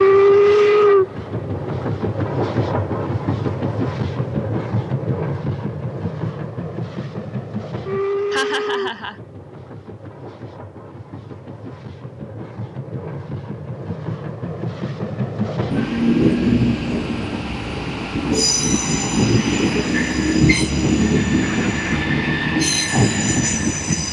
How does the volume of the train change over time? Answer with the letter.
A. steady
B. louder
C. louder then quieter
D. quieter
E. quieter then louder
E.